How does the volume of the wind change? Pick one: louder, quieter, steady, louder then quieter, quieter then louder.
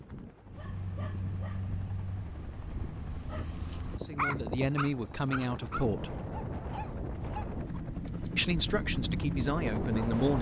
louder.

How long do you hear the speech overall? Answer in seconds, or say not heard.
4 s.